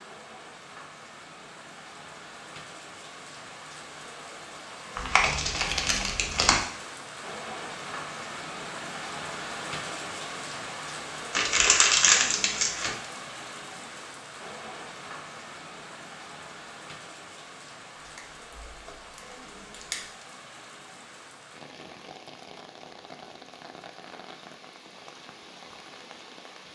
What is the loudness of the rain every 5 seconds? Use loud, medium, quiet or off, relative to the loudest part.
medium, loud, loud, medium, medium, medium.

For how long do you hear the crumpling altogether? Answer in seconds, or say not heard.
5 s.